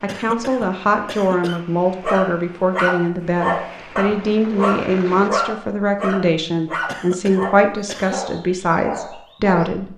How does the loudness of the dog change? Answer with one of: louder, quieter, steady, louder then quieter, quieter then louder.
quieter.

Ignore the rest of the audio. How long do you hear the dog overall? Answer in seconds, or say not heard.
8 s.